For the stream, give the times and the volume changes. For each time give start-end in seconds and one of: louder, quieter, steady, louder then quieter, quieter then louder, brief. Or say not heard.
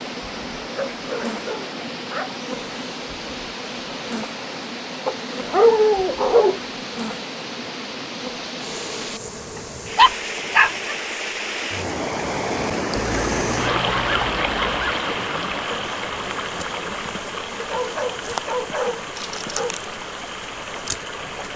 0.0-21.5 louder then quieter.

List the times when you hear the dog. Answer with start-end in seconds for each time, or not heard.
0.8-2.3, 5.0-6.5, 9.9-10.9, 12.9-15.1, 17.6-19.8.